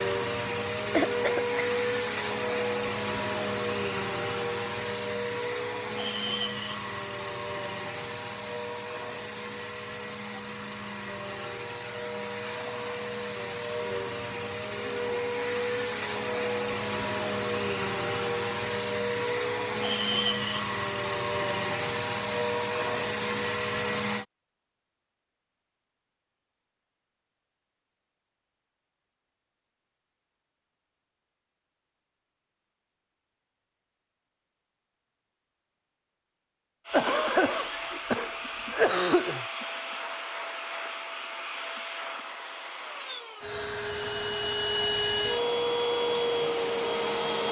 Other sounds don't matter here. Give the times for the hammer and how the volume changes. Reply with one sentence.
The hammer can't be heard in this clip.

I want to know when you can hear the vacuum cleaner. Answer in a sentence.
You can hear the vacuum cleaner from 0.0 to 24.2 s and from 36.9 to 47.4 s.